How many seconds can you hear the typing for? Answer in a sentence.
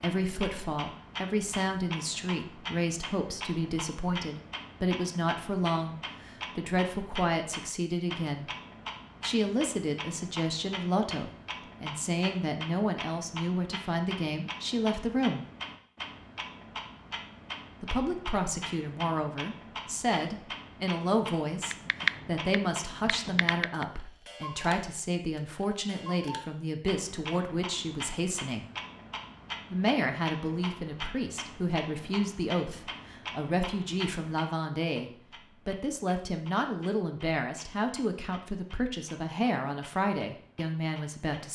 The typing can be heard for 2 seconds in total.